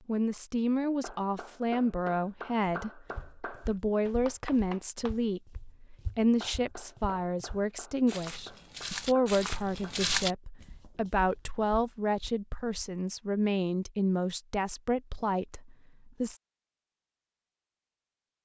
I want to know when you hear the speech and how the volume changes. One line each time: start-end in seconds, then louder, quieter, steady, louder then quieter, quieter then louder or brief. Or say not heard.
0.1-16.4 steady.